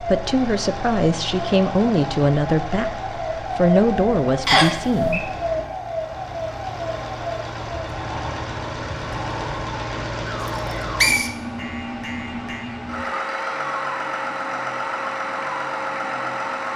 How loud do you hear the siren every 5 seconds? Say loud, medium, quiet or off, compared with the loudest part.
loud, loud, medium, medium.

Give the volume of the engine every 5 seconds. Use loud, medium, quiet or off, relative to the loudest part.
medium, medium, loud, loud.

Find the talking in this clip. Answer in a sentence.
You can hear the talking from 0.0 to 5.3 s.